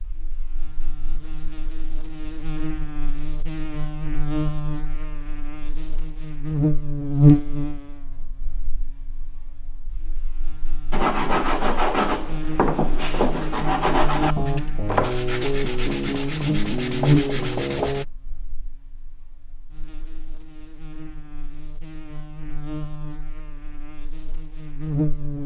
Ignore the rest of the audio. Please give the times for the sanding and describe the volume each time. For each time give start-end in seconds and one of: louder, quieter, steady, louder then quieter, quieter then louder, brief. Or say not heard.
10.9-18.1 steady.